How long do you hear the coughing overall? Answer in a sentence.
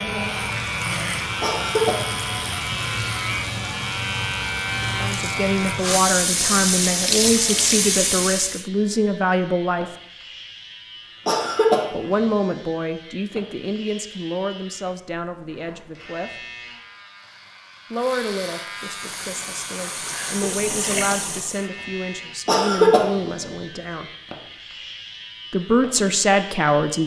You can hear the coughing for 2 seconds altogether.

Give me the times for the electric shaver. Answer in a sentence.
The electric shaver can be heard from 0.0 to 27.0 s.